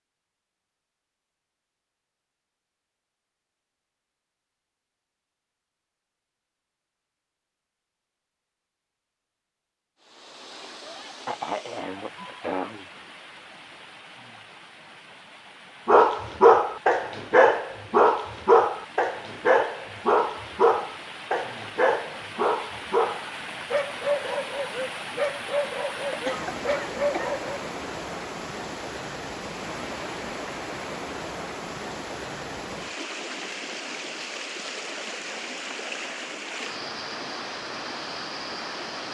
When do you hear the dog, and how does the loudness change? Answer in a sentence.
You can hear the dog from 15.8 to 27.6 s, getting quieter.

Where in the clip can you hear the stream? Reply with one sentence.
You can hear the stream from 10.0 to 39.0 s.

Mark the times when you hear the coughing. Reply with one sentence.
The coughing can be heard from 10.8 to 12.8 s and from 25.9 to 27.4 s.